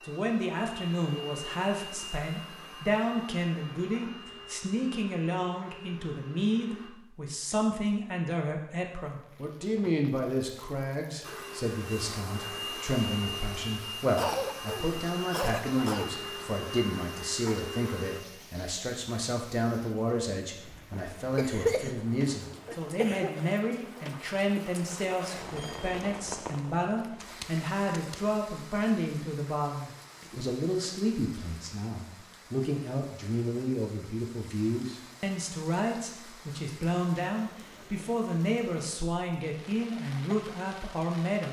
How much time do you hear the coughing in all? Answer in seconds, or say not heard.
4 s.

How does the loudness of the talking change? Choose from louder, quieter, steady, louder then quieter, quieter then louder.
steady.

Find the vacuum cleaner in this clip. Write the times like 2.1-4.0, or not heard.
0.0-6.9, 11.2-18.2.